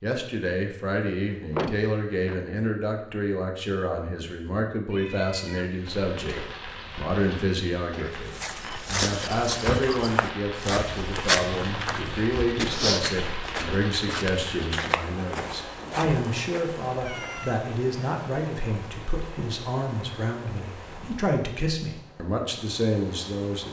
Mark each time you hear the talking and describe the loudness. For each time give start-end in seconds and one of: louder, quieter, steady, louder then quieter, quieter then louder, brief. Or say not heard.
0.0-23.6 steady.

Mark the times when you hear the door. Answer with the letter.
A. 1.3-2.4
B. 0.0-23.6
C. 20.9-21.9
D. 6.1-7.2
A.